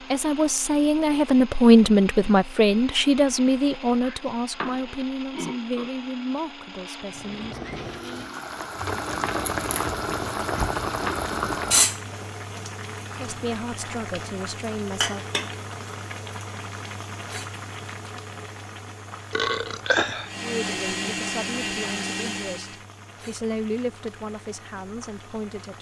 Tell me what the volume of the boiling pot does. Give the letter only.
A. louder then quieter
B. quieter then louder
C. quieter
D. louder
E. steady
C.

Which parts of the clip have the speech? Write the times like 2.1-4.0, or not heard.
0.1-7.7, 13.1-15.2, 20.4-25.7.